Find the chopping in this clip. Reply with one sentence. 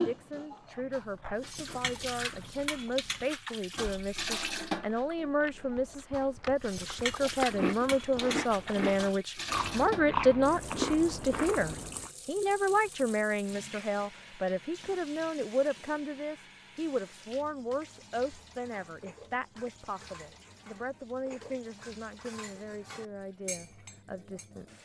You can't hear the chopping here.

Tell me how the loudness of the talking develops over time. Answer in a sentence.
The loudness of the talking goes up, then down.